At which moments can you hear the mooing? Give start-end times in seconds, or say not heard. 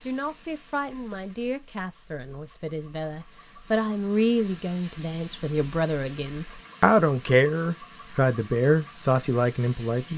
not heard.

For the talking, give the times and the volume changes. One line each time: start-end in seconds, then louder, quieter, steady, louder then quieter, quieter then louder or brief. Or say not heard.
0.1-10.1 louder.